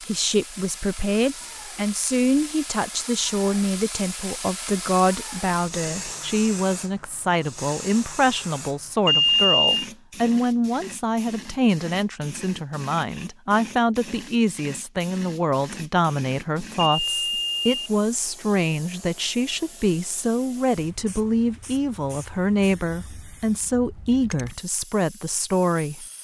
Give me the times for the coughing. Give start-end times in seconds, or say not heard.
not heard.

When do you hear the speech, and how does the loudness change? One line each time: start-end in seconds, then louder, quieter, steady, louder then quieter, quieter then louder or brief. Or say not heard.
0.1-26.1 steady.